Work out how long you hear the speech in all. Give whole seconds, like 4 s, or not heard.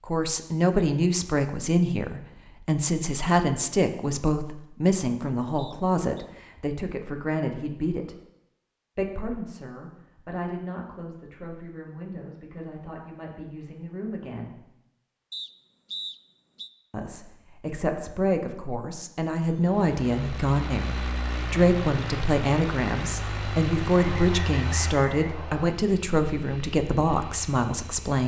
25 s.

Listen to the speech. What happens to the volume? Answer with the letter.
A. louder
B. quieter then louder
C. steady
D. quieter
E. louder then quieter
B.